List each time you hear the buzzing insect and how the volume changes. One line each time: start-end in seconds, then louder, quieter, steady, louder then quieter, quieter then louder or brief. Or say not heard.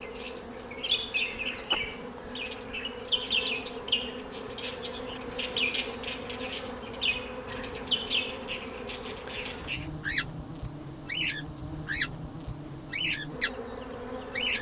0.0-14.5 steady.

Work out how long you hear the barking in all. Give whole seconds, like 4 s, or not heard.
not heard.